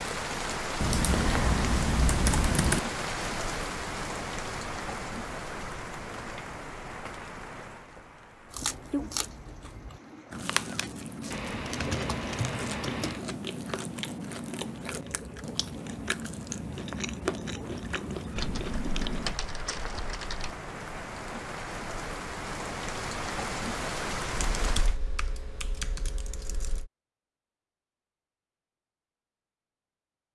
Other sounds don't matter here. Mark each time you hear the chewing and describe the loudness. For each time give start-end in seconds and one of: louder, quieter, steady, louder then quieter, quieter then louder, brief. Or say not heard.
8.5-19.4 steady.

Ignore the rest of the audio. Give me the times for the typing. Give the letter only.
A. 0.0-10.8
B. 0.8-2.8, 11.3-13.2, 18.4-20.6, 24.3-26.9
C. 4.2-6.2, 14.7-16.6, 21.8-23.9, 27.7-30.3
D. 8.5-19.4
B.